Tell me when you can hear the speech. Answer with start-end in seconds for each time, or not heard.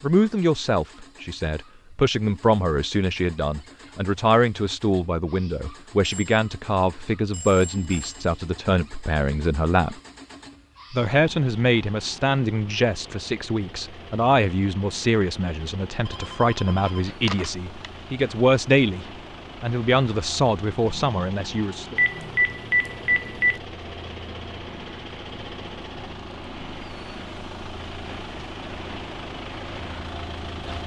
0.0-9.9, 10.9-21.9.